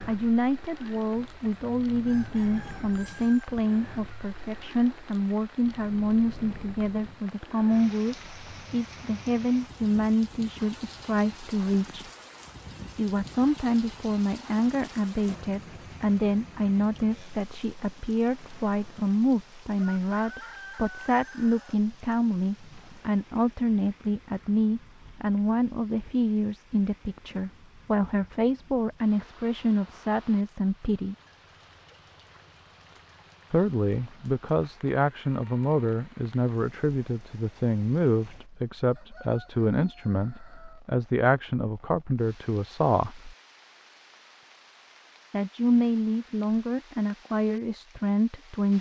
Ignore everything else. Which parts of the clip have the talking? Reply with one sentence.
The talking can be heard from 0.1 to 12.1 s, from 12.9 to 31.1 s, from 33.5 to 43.4 s and from 45.3 to 48.7 s.